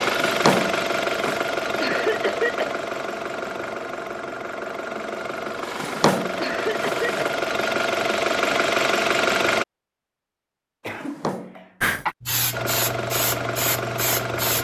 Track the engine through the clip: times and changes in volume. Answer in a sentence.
The engine can be heard from 0.0 to 9.7 s, getting quieter then louder; and briefly from 12.5 to 14.5 s.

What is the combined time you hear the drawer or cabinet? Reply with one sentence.
The drawer or cabinet can be heard for 4 seconds in total.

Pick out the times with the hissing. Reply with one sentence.
The hissing can be heard from 11.8 to 14.5 s.